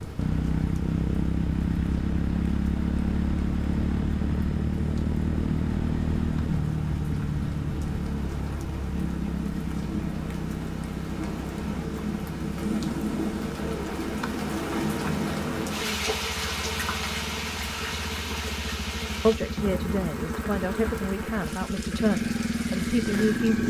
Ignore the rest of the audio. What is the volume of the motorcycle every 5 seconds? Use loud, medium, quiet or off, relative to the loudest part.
loud, loud, medium, medium, loud.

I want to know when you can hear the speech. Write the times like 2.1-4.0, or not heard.
19.2-23.6.